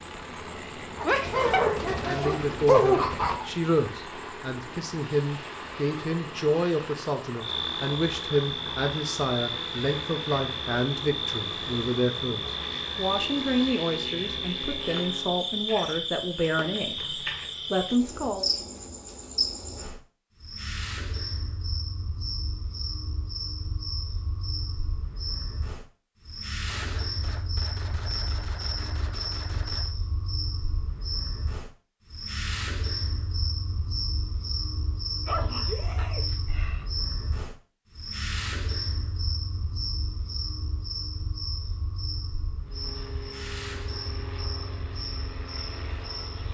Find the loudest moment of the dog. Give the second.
3 s.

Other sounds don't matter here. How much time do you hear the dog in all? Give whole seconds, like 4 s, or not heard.
4 s.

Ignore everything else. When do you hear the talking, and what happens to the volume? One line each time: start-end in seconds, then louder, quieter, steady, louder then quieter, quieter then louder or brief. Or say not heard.
2.0-18.4 steady.